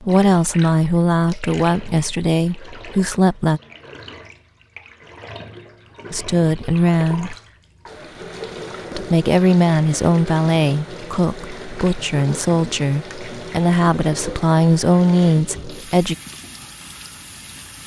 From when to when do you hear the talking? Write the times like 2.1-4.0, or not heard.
0.0-3.6, 6.1-7.3, 8.9-16.1.